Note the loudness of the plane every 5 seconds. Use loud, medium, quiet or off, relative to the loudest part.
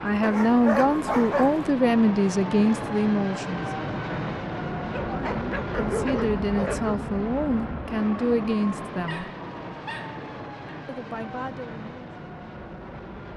loud, loud, medium.